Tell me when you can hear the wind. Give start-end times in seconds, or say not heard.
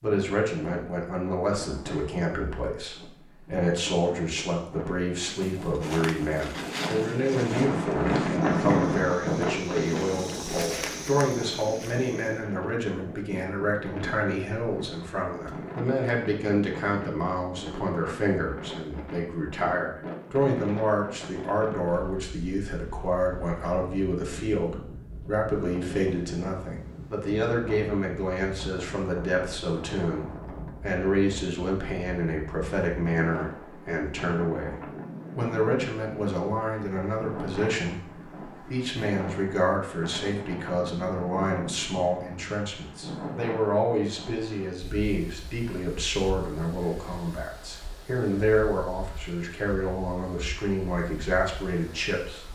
0.0-52.4.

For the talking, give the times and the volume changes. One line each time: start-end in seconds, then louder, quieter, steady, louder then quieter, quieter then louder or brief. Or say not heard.
0.0-52.4 steady.